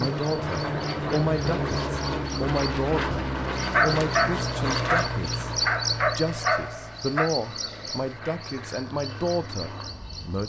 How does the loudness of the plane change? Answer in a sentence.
The volume of the plane goes down.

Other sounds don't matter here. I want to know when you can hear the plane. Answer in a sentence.
You can hear the plane from 0.0 to 10.4 s.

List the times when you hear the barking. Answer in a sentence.
You can hear the barking from 3.7 to 7.3 s.